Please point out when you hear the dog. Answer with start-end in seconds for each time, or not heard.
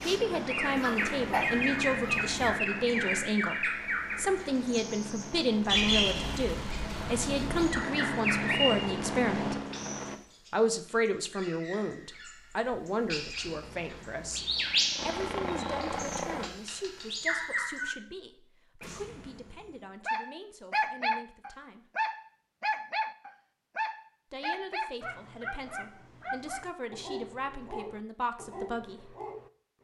0.0-2.6, 20.1-29.7.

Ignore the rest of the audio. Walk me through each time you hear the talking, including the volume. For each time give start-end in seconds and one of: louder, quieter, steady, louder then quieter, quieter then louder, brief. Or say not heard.
0.0-9.6 steady
10.5-21.9 quieter
24.3-29.1 louder.